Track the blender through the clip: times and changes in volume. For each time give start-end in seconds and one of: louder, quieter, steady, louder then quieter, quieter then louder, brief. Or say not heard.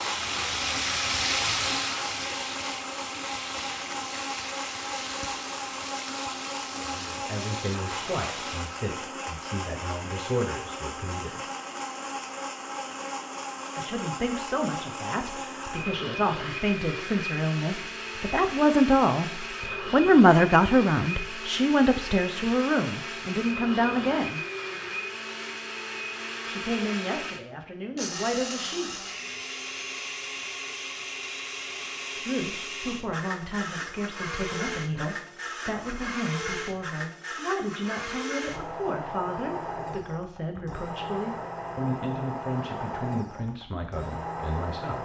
0.0-45.0 steady.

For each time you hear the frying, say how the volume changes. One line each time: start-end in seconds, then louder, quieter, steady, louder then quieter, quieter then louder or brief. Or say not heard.
0.0-8.8 quieter.